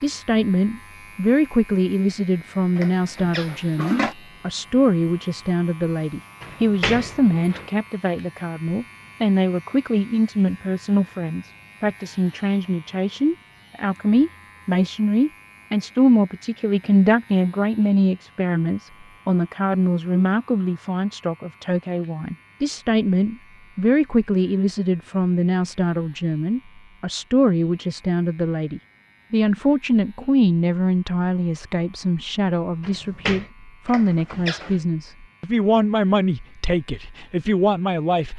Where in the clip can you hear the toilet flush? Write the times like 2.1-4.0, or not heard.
2.8-4.2, 33.9-34.8.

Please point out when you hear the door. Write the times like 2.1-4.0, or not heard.
6.4-7.7, 32.8-33.5.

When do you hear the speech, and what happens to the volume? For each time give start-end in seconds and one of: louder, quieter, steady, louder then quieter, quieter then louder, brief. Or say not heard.
0.0-38.3 steady.